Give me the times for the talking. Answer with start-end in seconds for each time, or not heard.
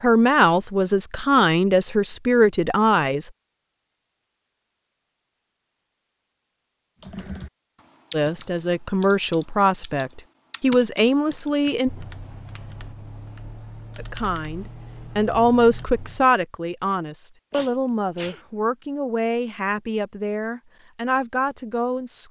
0.0-3.3, 8.1-11.9, 13.9-22.2.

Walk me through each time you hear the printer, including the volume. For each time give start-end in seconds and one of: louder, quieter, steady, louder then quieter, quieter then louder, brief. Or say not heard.
not heard.